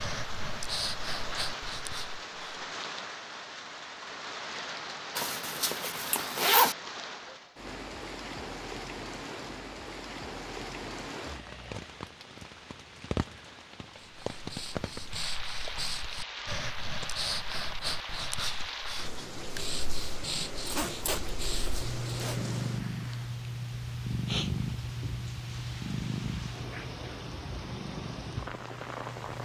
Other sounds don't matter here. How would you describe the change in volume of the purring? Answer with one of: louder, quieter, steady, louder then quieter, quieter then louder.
quieter.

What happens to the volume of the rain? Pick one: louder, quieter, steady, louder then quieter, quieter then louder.
steady.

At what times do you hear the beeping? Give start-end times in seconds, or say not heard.
not heard.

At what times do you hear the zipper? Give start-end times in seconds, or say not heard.
5.2-6.8, 20.6-22.6.